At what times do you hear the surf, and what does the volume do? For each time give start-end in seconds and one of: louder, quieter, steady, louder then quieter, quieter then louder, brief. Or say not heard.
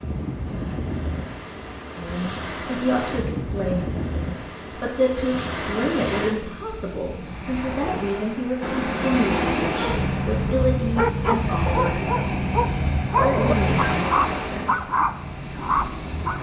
0.0-16.3 steady.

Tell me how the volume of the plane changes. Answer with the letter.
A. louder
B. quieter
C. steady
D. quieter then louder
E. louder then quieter
B.